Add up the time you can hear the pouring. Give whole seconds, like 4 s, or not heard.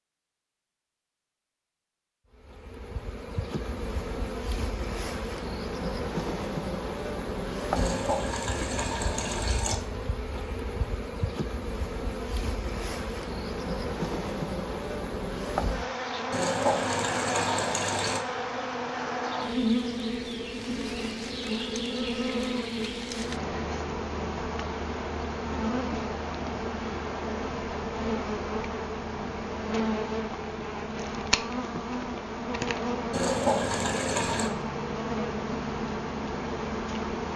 5 s.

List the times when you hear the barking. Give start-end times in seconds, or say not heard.
not heard.